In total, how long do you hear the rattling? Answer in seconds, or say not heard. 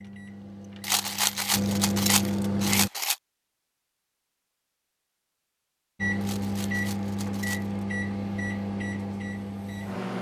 4 s.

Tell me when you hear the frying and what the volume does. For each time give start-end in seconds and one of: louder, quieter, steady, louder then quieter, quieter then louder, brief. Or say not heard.
not heard.